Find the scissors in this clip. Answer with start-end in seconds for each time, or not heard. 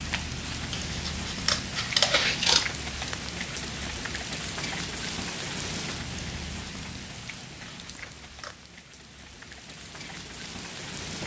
0.7-2.7, 7.8-8.6.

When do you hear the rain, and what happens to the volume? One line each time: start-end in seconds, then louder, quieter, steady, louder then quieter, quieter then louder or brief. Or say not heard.
0.0-11.2 quieter.